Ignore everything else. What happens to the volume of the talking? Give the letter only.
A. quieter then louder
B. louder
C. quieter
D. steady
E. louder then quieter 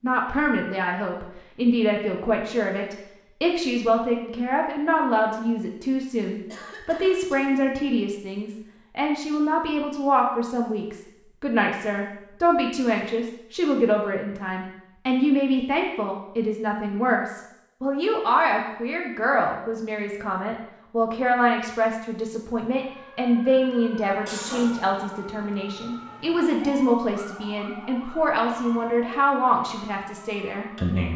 D.